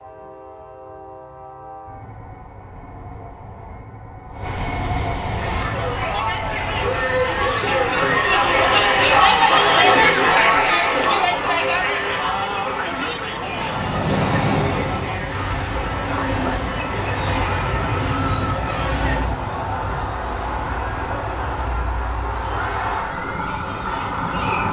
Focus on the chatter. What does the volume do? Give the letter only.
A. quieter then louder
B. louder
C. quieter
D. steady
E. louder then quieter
C.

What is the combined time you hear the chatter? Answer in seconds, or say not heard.
19 s.